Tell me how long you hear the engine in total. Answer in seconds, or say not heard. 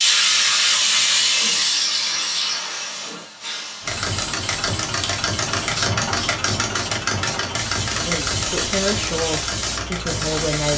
7 s.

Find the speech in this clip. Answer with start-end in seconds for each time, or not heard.
7.9-10.7.